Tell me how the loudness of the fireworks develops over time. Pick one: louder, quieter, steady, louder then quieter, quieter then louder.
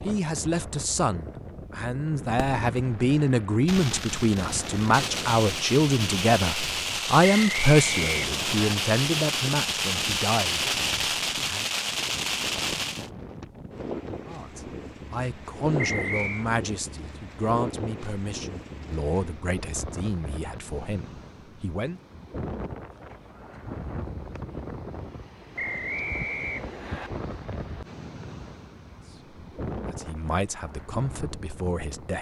louder.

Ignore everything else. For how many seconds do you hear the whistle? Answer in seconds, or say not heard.
4 s.